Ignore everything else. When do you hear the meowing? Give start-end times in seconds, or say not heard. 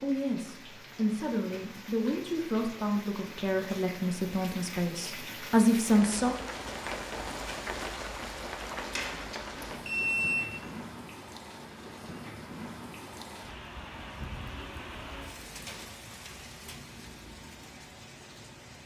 not heard.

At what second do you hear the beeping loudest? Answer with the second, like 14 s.
10 s.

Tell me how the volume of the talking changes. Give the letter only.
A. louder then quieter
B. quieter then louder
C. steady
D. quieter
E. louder
E.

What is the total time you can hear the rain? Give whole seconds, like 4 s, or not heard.
19 s.